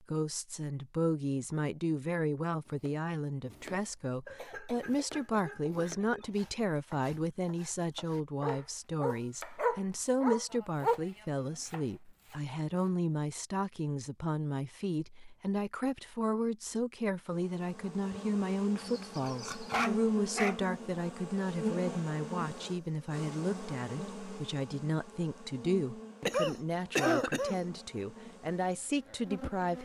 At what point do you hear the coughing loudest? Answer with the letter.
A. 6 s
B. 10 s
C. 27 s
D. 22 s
C.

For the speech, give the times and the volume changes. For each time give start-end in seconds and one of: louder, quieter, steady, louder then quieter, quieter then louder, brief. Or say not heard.
0.0-29.8 steady.